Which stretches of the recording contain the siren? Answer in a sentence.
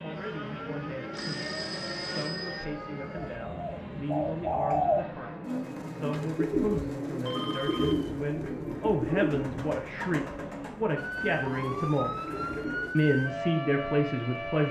The siren can be heard from 0.0 to 3.4 s and from 10.9 to 14.6 s.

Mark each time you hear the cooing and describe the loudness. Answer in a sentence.
The cooing can be heard from 3.1 to 12.9 s, getting quieter.